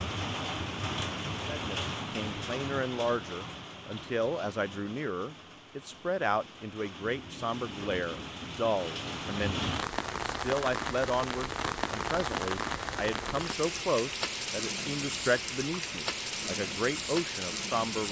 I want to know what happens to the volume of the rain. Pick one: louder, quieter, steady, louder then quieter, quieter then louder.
quieter then louder.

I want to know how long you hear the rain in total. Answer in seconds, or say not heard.
18 s.